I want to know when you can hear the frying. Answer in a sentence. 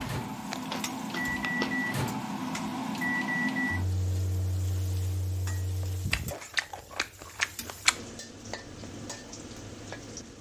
The frying can be heard from 0.0 to 10.3 s.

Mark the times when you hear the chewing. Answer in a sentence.
The chewing can be heard from 0.5 to 1.9 s and from 5.8 to 8.1 s.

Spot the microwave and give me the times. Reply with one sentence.
The microwave can be heard from 0.0 to 6.2 s.